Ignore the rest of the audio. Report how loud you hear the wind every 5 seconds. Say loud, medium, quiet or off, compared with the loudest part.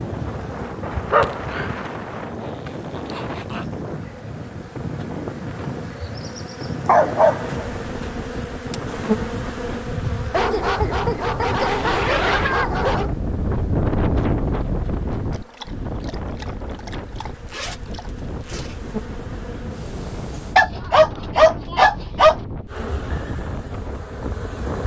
medium, medium, loud, medium, medium.